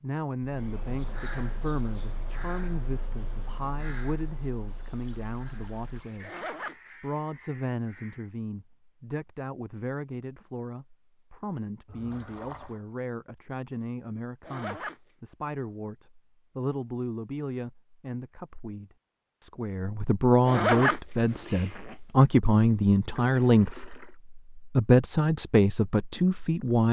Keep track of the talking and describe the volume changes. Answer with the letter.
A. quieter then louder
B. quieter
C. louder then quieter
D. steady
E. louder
E.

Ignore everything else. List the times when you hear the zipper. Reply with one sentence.
You can hear the zipper from 6.2 to 6.9 s, from 14.4 to 15.1 s and from 20.4 to 21.9 s.